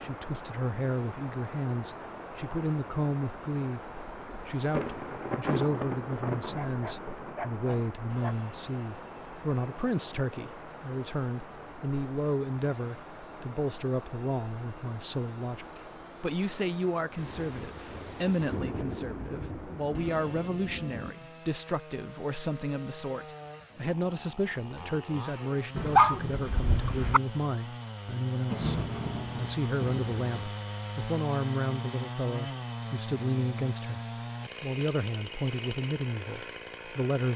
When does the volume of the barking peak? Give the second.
26 s.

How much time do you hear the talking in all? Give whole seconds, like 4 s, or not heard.
37 s.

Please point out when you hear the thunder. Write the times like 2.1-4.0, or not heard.
4.7-7.5, 17.1-21.1, 28.5-30.5.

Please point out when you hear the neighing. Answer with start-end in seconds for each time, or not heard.
not heard.